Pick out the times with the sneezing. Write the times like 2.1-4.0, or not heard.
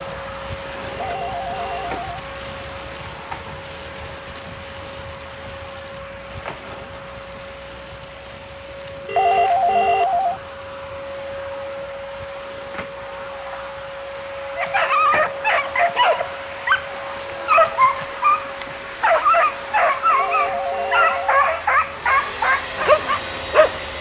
not heard.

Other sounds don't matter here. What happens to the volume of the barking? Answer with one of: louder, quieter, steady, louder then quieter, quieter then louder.
steady.